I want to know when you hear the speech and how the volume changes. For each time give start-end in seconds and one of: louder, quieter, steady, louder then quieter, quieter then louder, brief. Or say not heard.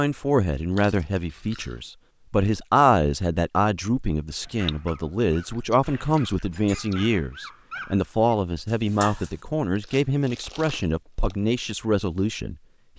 0.0-12.9 steady.